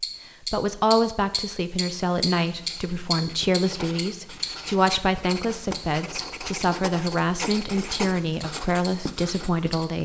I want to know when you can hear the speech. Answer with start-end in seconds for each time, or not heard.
0.4-10.0.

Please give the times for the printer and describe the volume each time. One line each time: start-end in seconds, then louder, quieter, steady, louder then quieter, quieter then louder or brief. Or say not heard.
not heard.